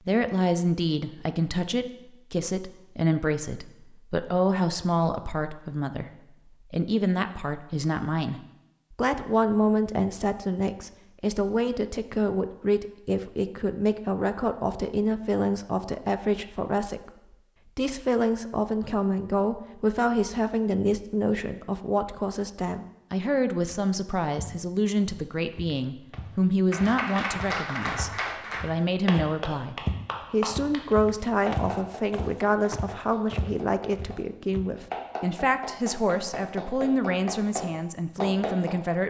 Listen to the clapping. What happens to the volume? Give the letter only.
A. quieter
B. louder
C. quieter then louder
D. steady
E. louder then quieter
C.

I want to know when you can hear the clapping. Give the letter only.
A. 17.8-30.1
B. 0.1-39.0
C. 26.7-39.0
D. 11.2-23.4
C.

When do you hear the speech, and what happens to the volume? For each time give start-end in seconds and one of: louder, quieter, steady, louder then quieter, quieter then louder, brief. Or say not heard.
0.1-39.0 steady.